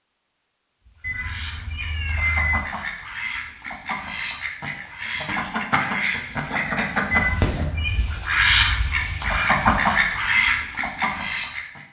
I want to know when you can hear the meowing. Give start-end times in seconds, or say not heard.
1.0-2.6, 7.1-8.0.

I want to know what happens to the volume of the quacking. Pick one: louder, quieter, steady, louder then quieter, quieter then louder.
louder.